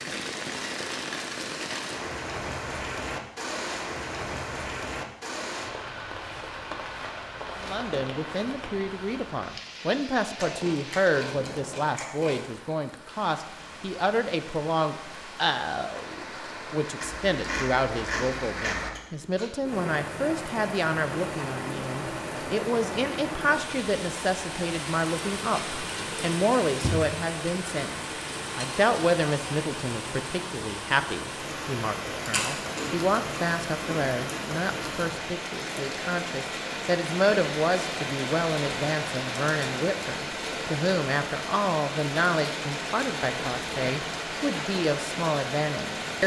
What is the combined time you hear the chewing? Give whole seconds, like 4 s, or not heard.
7 s.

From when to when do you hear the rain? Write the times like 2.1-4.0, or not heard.
0.0-46.2.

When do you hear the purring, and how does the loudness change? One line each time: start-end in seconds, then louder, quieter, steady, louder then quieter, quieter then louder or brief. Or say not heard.
not heard.